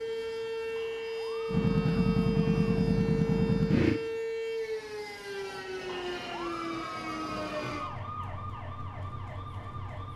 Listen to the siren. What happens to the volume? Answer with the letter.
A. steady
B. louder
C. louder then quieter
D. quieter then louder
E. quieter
E.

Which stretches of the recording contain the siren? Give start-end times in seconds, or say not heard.
0.0-10.1.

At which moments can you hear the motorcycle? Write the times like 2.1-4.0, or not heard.
1.5-4.0.